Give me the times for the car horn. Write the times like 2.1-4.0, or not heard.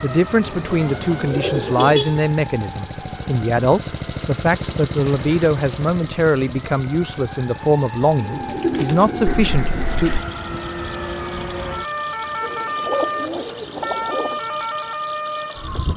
1.8-2.2, 9.2-10.2.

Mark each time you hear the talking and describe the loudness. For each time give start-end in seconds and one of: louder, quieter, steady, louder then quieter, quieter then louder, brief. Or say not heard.
0.0-10.2 steady.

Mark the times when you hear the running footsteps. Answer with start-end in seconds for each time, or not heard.
not heard.